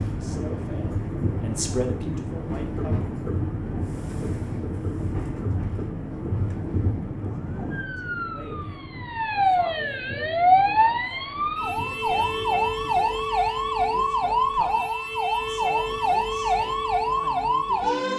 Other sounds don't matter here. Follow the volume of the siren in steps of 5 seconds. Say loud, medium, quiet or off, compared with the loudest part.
quiet, medium, loud, loud.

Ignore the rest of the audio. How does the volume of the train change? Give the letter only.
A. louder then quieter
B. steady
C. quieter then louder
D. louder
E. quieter
E.